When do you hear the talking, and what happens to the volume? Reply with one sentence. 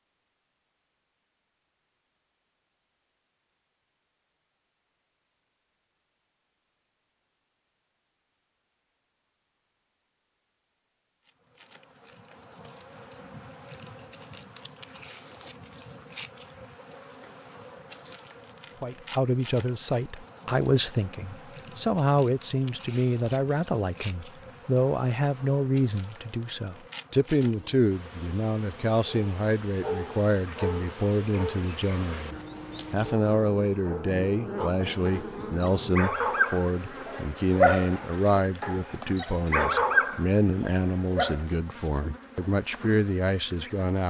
The talking can be heard from 18.8 to 44.0 s, at a steady volume.